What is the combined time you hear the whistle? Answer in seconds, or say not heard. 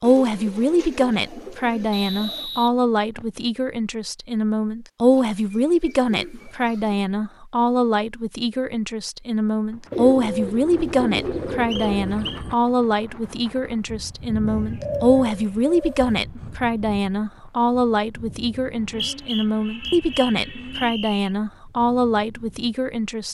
5 s.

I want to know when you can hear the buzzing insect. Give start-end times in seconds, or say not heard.
not heard.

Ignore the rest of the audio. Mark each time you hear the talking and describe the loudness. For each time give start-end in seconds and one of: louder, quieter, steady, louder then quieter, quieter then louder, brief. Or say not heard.
0.0-23.3 steady.